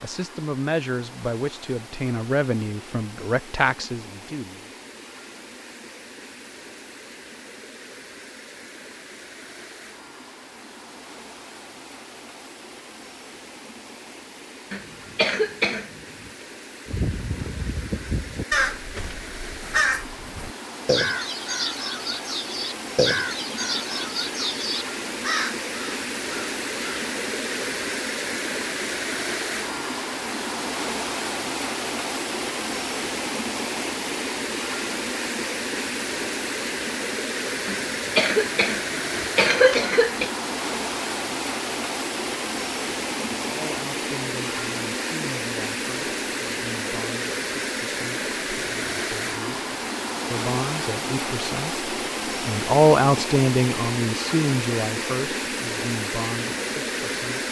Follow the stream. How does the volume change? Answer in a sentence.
The loudness of the stream goes up.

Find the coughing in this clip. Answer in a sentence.
You can hear the coughing from 14.7 to 16.3 s and from 37.6 to 40.3 s.